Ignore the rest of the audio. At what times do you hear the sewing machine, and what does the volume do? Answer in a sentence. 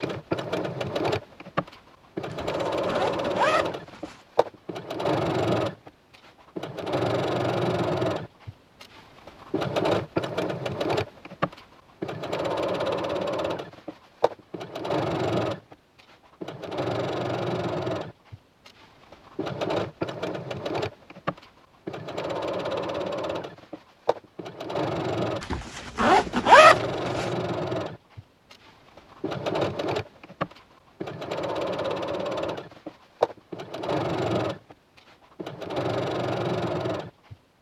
You can hear the sewing machine from 0.0 to 37.5 s, at a steady volume.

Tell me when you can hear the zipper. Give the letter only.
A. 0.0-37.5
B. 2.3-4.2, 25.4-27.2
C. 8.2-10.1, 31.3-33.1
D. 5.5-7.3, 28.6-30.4
B.